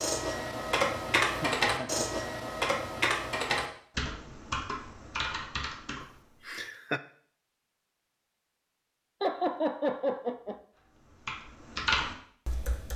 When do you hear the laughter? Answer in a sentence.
The laughter can be heard from 1.2 to 2.2 s, from 6.5 to 7.0 s and from 9.2 to 10.6 s.